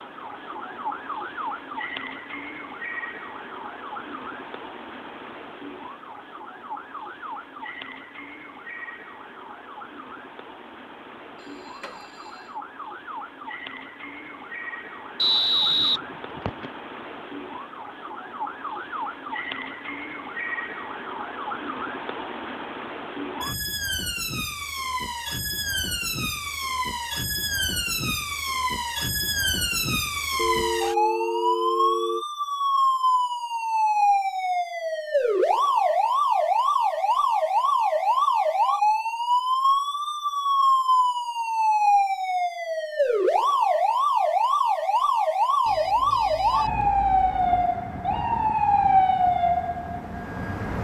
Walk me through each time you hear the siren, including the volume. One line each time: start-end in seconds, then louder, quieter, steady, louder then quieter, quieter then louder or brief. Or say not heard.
0.0-50.8 louder.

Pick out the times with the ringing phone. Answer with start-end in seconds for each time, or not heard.
11.3-12.5, 30.4-32.2, 45.6-47.6.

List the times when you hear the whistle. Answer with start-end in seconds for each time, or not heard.
15.2-16.6.